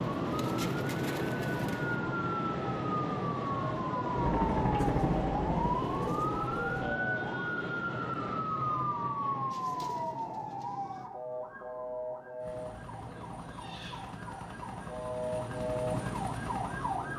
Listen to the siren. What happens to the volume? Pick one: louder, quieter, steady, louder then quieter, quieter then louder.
quieter.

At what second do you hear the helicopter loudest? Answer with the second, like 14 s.
5 s.